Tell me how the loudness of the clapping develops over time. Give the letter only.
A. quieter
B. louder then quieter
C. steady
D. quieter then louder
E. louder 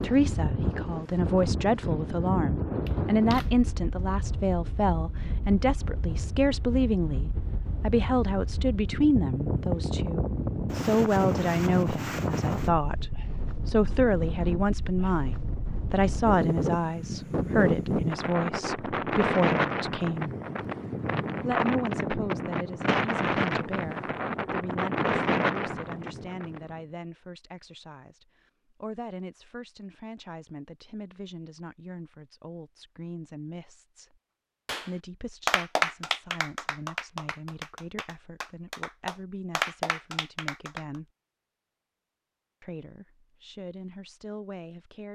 D.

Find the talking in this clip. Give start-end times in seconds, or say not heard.
0.0-20.3, 21.4-34.1, 34.9-41.0, 42.6-45.1.